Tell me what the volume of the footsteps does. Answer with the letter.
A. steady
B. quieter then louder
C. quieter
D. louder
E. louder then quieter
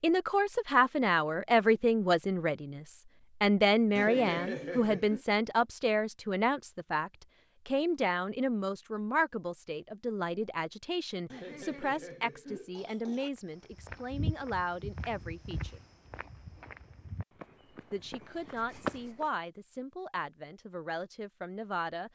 C.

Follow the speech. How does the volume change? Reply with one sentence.
The loudness of the speech goes down.